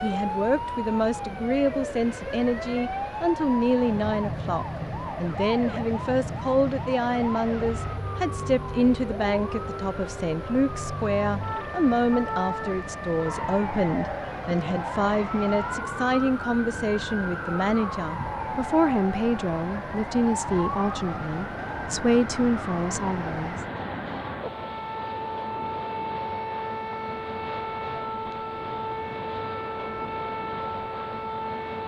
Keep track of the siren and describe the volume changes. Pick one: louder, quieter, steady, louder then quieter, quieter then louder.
steady.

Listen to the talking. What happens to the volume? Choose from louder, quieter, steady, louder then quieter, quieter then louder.
steady.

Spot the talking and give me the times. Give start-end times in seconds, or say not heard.
0.0-23.6.